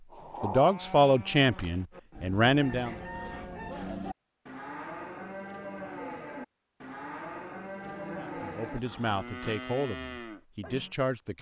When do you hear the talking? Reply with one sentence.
You can hear the talking from 0.4 to 3.0 s and from 8.2 to 11.3 s.